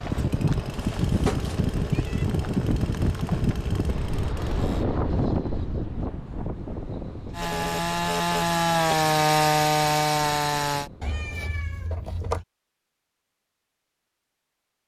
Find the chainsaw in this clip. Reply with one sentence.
You can hear the chainsaw from 0.0 to 4.8 s and from 7.3 to 10.9 s.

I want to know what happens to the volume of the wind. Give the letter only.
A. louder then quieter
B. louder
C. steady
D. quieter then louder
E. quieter
E.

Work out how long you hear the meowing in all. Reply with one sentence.
The meowing can be heard for 3 seconds in total.